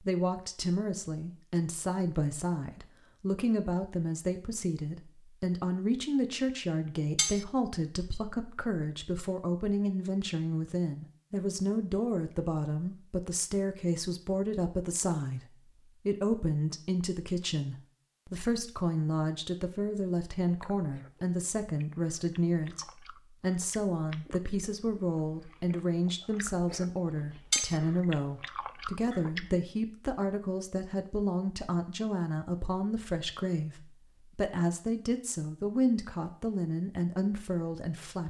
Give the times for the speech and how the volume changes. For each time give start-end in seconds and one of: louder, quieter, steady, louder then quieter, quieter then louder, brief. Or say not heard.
0.0-38.2 steady.